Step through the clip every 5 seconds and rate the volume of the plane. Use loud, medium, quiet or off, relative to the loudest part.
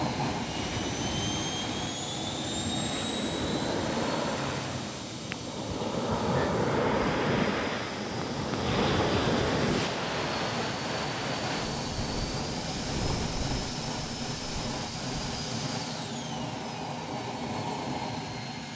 loud, medium, loud, loud.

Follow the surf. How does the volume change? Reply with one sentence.
The loudness of the surf goes up, then down.